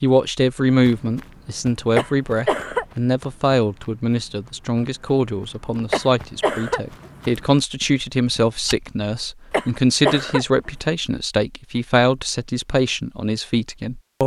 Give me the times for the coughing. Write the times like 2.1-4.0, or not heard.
1.9-2.9, 5.9-7.1, 9.5-10.7.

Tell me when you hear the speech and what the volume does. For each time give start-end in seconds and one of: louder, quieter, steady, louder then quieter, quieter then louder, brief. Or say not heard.
0.0-14.2 steady.